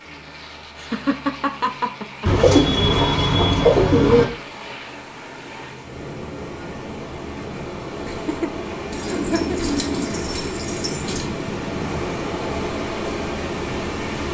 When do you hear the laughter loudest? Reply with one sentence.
The loudest moment of the laughter is at 1 second.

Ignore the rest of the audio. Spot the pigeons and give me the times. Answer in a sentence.
The pigeons can be heard from 2.2 to 4.2 s and from 8.9 to 11.2 s.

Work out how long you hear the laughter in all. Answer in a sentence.
The laughter can be heard for 3 seconds in total.